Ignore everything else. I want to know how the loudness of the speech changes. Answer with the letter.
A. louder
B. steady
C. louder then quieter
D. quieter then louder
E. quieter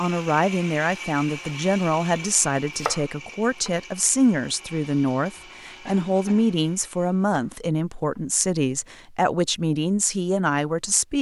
B.